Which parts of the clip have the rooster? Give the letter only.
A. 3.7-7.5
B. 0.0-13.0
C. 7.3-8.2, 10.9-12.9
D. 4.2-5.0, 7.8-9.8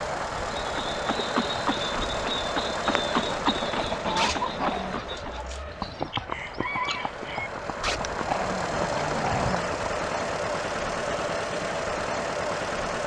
A.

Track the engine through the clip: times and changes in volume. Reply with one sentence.
The engine can be heard from 0.0 to 13.0 s, getting quieter then louder.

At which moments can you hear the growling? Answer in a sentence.
You can hear the growling from 4.2 to 5.0 s and from 7.8 to 9.8 s.